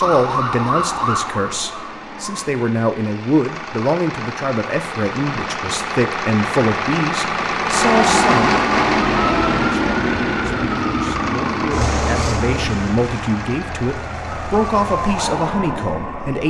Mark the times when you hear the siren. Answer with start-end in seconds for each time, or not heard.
0.0-2.5, 7.8-16.4.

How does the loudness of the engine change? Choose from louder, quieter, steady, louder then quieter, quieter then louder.
louder then quieter.